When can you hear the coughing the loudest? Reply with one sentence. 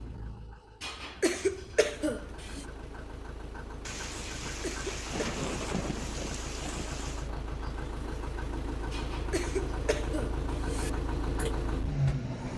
The volume of the coughing peaks at 1 second.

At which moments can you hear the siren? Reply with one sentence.
The siren can't be heard in this clip.